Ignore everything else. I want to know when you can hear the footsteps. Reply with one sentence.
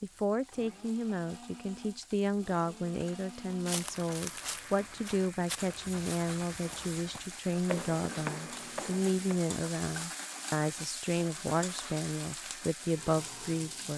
You can hear the footsteps from 3.5 to 9.3 s.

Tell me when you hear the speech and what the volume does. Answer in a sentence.
The speech can be heard from 0.0 to 13.9 s, at a steady volume.